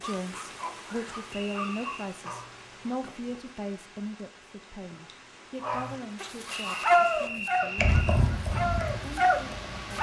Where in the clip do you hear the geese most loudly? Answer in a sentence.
The loudest moment of the geese is at 8 seconds.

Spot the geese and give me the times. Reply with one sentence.
The geese can be heard from 6.5 to 9.9 s.